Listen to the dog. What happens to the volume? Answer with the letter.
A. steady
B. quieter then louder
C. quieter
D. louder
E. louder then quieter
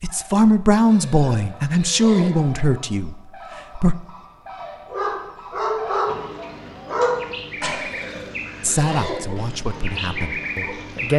C.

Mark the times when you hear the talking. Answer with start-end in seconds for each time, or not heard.
0.0-4.0, 8.6-11.1.